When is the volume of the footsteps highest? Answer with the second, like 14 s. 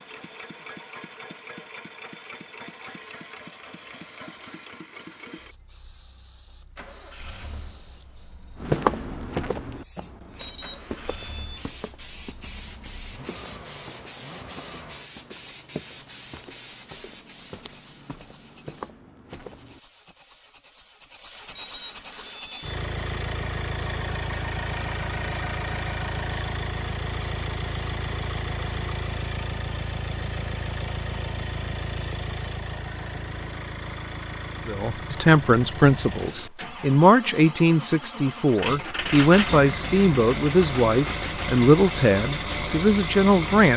9 s.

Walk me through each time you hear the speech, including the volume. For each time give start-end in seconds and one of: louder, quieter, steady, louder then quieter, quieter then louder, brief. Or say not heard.
34.6-43.7 steady.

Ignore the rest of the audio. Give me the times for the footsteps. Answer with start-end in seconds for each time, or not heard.
8.6-20.1.